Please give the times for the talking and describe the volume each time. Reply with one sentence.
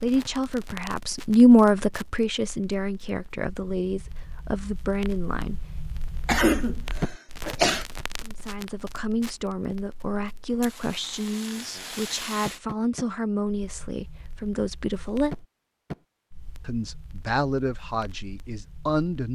The talking can be heard from 0.0 to 5.6 s, getting louder then quieter; from 8.2 to 15.3 s, at a steady volume; and briefly from 16.6 to 19.2 s.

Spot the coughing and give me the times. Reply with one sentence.
The coughing can be heard from 6.2 to 7.8 s.